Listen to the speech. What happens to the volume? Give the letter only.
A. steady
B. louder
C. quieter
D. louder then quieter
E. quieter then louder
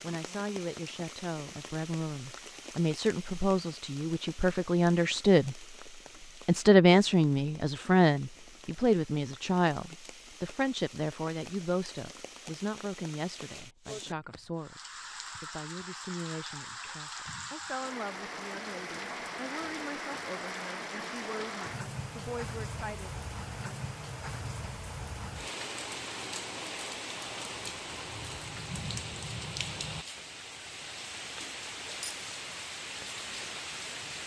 D.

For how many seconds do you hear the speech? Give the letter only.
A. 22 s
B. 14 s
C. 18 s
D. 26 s
A.